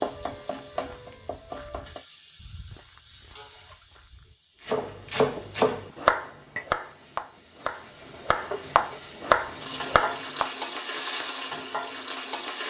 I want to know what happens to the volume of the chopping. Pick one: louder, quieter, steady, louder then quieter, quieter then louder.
quieter then louder.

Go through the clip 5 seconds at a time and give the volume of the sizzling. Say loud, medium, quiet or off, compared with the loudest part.
medium, medium, loud.